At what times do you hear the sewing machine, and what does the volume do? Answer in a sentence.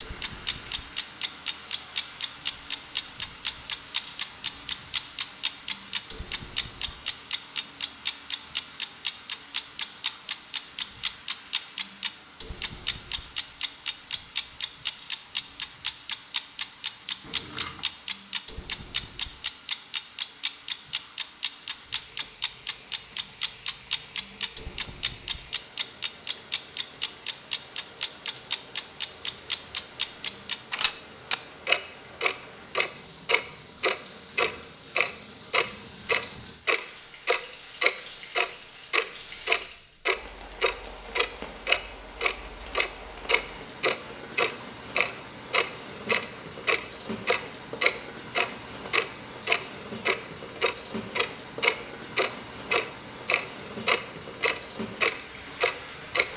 You can't hear the sewing machine here.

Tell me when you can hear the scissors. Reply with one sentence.
You can hear the scissors from 17.2 to 17.9 s.